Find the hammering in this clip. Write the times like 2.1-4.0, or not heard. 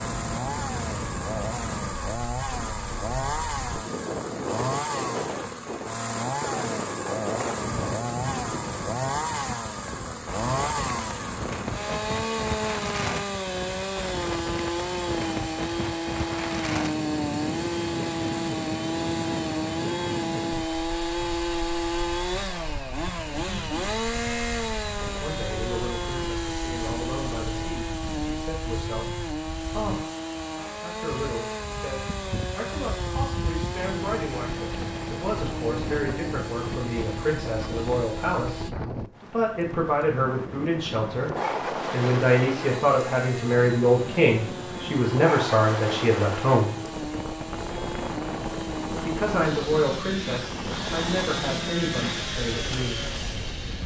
not heard.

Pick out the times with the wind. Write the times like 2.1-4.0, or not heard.
0.0-53.8.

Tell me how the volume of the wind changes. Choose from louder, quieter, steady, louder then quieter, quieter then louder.
quieter then louder.